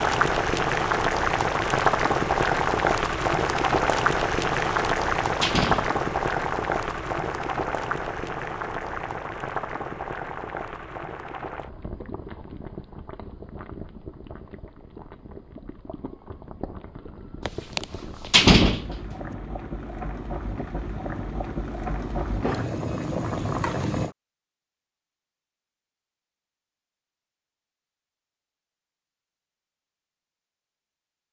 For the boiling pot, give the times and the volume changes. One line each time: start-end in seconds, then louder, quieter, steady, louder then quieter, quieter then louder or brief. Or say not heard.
0.0-24.1 quieter then louder.